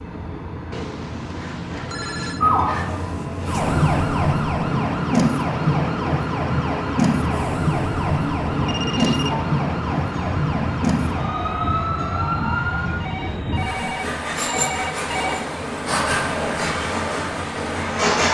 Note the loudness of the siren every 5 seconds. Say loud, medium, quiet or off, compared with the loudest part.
loud, loud, loud, off.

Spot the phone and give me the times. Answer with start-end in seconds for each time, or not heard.
0.7-2.5, 8.7-9.4, 12.8-15.5.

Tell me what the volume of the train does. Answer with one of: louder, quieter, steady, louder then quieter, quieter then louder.
louder.